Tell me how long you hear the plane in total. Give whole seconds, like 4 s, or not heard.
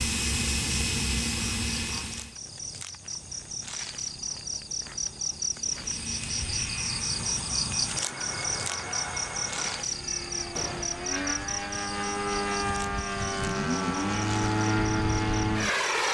13 s.